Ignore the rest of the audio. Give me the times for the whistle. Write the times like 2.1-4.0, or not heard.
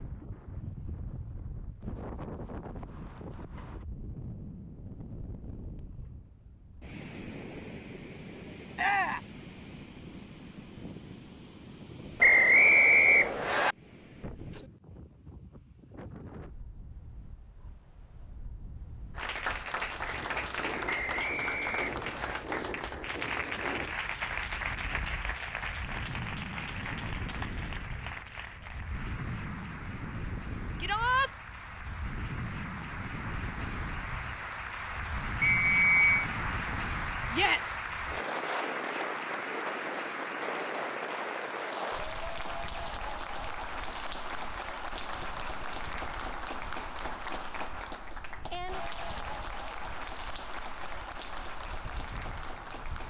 12.2-13.8, 20.9-22.4, 35.5-36.0.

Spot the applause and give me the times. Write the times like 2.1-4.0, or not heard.
19.1-53.0.